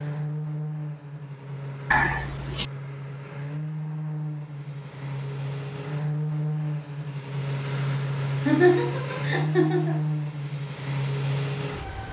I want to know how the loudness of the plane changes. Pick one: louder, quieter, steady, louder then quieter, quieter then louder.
louder.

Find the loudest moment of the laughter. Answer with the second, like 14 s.
9 s.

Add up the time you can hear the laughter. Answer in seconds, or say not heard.
2 s.